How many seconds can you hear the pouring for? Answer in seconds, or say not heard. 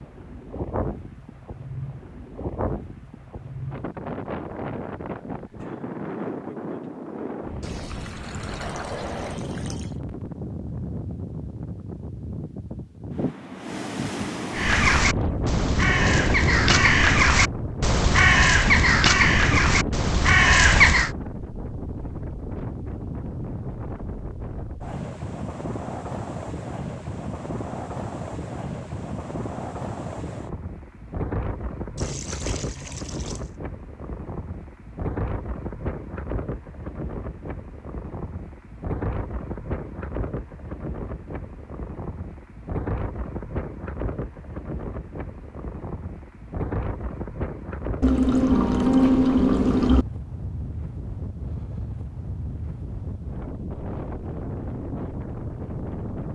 6 s.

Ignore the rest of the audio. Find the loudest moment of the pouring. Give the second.
49 s.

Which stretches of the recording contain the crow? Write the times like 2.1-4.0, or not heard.
14.5-21.1.